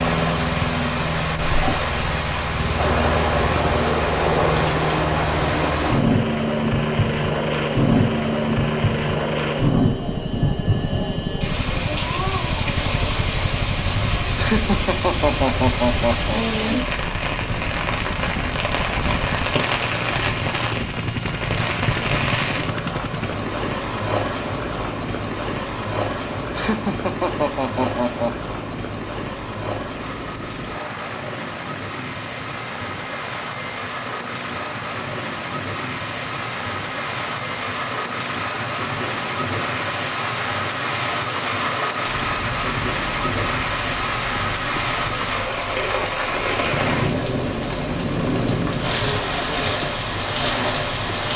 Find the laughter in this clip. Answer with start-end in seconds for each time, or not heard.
14.3-16.9, 26.5-28.5.